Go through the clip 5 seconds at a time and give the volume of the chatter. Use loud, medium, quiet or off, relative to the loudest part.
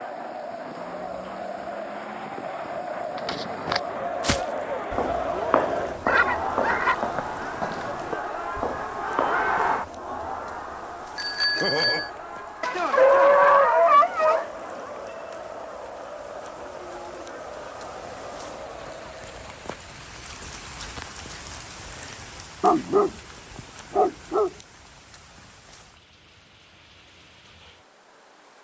loud, loud, medium, medium, off, off.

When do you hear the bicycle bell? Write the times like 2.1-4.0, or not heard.
11.2-12.1.